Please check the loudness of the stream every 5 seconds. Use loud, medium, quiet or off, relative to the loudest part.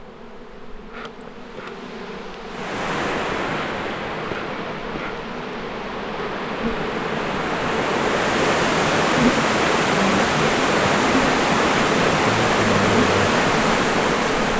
medium, loud, loud.